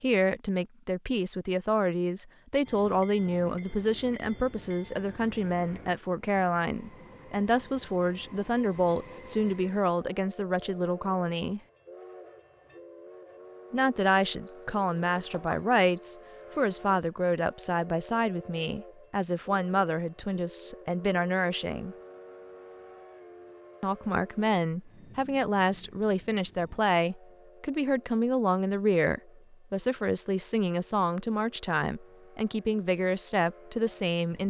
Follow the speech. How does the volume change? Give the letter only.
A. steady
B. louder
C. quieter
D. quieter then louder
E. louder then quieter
A.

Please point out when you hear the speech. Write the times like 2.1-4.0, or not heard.
0.0-11.6, 13.7-21.9, 23.8-34.4.